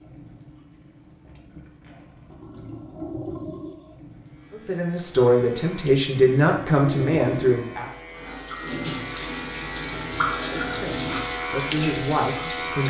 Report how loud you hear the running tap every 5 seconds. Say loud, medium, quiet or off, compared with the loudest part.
medium, loud, loud.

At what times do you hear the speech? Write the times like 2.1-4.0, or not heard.
4.5-7.9, 10.3-12.8.